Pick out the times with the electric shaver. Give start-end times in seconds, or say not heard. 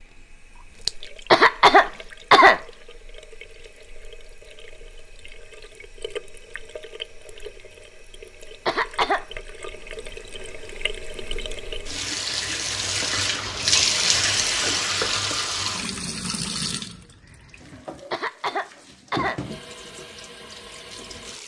not heard.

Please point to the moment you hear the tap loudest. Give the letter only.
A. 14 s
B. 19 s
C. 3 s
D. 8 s
A.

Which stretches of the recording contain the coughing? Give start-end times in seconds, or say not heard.
1.3-2.6, 8.7-9.2, 18.1-19.4.